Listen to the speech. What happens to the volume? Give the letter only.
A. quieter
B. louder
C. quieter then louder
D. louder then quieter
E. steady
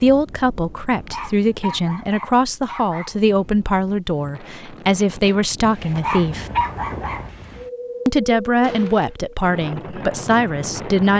E.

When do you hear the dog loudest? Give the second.
7 s.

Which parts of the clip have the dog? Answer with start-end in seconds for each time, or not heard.
0.9-3.2, 5.8-7.2.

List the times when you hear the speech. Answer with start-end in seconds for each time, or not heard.
0.0-6.5, 8.1-11.1.